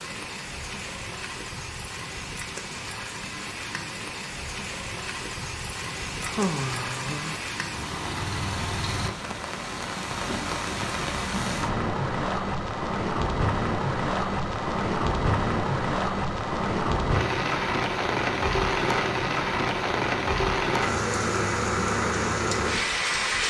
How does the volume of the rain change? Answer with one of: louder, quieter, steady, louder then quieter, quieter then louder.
louder.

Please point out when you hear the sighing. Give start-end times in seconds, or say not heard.
6.2-7.5.